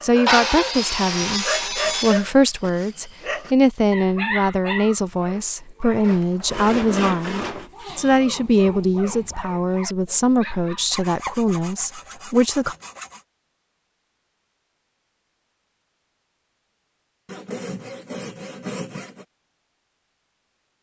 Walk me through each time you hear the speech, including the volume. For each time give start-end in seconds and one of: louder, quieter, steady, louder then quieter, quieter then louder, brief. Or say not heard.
0.0-12.8 steady.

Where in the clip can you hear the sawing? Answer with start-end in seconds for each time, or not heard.
0.2-2.2, 6.0-7.7, 10.9-13.2, 17.2-19.2.